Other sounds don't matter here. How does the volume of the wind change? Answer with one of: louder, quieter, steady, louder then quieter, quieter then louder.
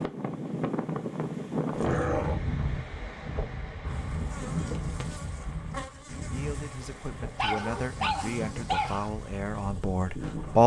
quieter.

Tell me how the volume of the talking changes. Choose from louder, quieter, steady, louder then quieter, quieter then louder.
louder.